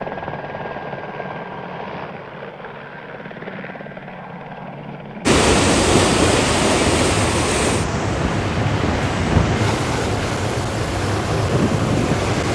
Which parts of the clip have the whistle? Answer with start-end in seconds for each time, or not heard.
not heard.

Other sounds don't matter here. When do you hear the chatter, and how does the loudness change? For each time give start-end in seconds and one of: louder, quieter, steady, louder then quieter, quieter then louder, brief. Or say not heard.
not heard.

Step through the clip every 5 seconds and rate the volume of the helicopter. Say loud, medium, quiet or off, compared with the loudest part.
medium, loud, loud.